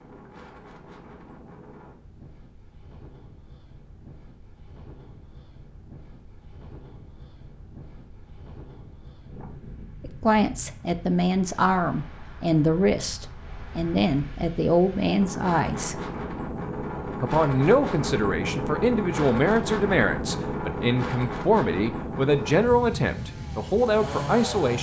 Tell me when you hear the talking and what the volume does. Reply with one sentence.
The talking can be heard from 10.0 to 15.9 s, at a steady volume; and from 17.2 to 24.7 s, at a steady volume.